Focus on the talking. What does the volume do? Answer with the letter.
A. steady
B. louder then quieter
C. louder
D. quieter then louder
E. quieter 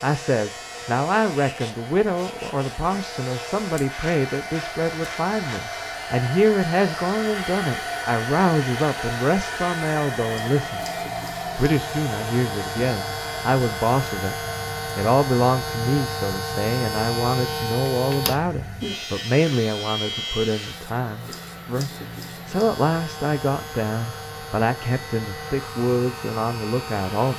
A.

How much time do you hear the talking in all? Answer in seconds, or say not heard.
27 s.